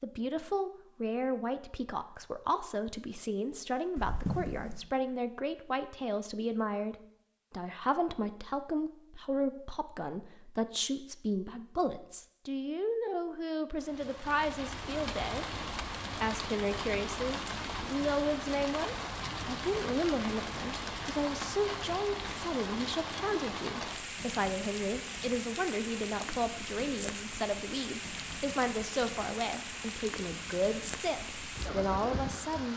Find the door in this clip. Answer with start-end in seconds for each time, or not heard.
4.0-4.9.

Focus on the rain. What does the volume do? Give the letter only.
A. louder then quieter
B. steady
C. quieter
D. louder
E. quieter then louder
B.